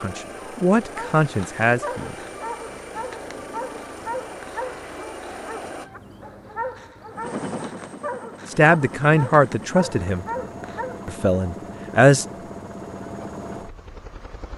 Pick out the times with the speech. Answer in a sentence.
The speech can be heard from 0.0 to 2.1 s, from 8.5 to 10.2 s and from 11.1 to 12.2 s.